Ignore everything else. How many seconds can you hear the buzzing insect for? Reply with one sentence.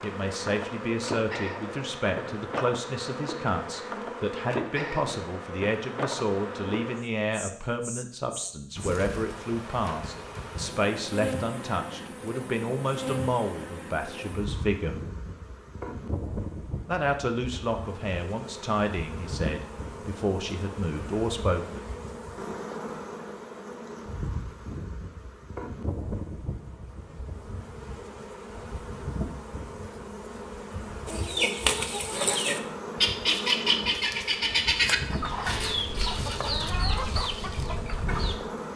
You can hear the buzzing insect for 39 seconds altogether.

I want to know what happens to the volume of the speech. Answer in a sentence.
The volume of the speech stays about the same.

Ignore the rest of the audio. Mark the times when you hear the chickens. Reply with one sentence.
You can hear the chickens from 31.1 to 38.4 s.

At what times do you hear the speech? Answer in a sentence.
You can hear the speech from 0.0 to 15.0 s and from 16.9 to 21.9 s.